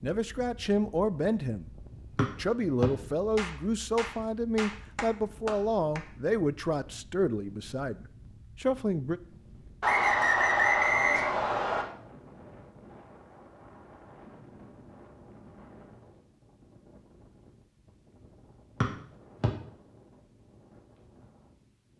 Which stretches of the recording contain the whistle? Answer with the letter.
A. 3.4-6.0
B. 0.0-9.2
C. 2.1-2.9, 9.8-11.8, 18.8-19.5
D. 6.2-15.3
C.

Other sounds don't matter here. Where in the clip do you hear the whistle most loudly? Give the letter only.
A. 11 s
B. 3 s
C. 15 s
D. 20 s
A.